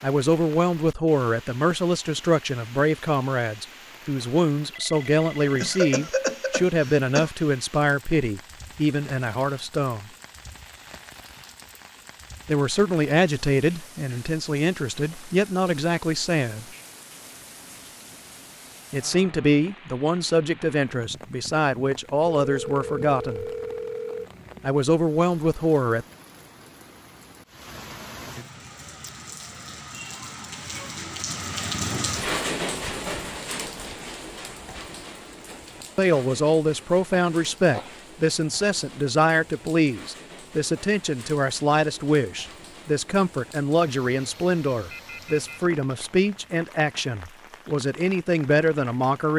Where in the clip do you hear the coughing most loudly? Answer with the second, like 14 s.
6 s.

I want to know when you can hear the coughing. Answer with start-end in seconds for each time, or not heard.
5.6-7.3, 37.1-38.0.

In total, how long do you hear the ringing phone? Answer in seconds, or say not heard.
4 s.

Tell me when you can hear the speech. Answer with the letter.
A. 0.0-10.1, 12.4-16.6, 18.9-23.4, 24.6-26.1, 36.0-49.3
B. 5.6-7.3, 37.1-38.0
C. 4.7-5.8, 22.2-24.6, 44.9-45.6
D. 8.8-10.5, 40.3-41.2
A.